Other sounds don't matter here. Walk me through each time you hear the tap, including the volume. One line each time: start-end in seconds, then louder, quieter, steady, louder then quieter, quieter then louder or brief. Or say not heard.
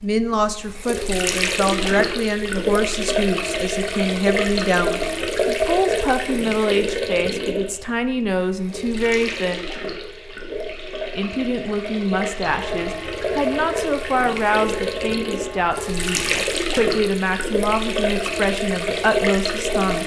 0.0-20.0 quieter then louder.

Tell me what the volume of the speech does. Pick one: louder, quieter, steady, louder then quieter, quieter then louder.
steady.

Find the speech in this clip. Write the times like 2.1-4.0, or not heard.
0.0-9.6, 11.2-20.0.